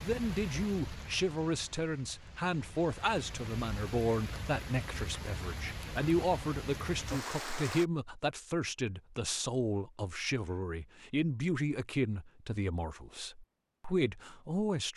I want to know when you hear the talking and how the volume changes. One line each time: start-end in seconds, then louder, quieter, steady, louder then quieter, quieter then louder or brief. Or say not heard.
0.0-14.9 steady.